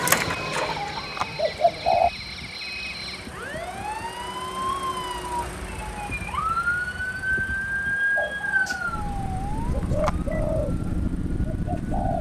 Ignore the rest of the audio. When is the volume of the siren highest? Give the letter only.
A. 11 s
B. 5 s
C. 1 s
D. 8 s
D.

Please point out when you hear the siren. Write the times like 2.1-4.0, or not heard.
0.1-12.1.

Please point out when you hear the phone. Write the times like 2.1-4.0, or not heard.
0.9-1.4, 9.8-10.4.